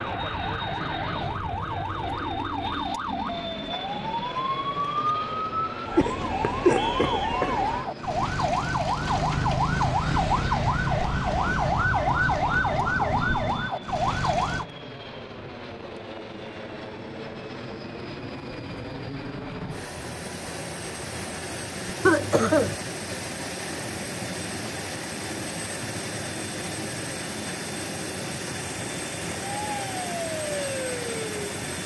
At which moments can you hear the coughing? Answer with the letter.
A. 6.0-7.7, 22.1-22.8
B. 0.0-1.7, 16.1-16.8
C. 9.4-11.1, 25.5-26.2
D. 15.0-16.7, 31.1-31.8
A.